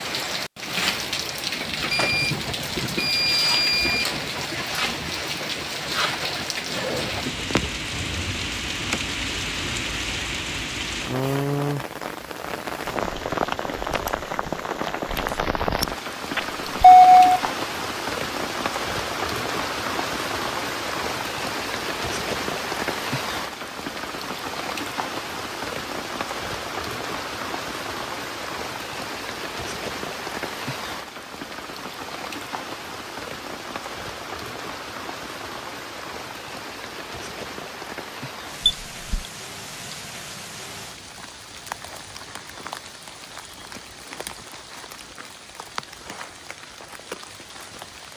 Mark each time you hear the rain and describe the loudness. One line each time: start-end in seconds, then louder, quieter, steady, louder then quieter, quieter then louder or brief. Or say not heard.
0.0-48.1 quieter.